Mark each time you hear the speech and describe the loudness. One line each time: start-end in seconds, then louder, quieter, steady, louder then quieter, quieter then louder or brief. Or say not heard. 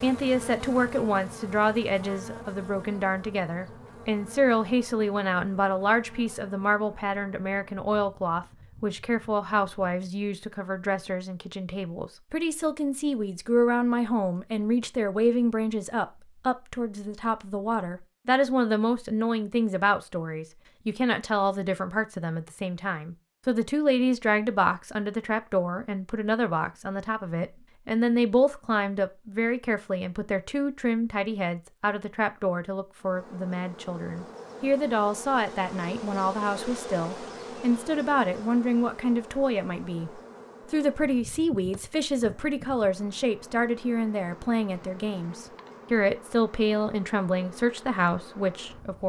0.0-49.0 steady.